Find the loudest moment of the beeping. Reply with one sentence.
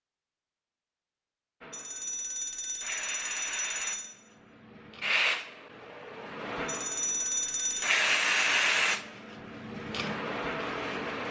The loudest moment of the beeping is at 7 seconds.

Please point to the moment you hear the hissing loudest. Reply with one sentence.
The loudest moment of the hissing is at 8 seconds.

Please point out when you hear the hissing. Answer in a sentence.
The hissing can be heard from 1.6 to 11.2 s.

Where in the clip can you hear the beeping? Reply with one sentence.
The beeping can be heard from 1.7 to 4.1 s and from 6.7 to 8.0 s.